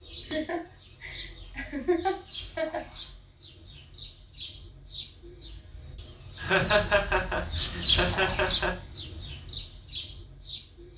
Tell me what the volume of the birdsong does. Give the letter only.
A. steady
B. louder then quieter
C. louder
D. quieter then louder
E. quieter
B.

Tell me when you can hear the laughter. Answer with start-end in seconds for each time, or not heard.
0.2-2.8, 6.3-8.8.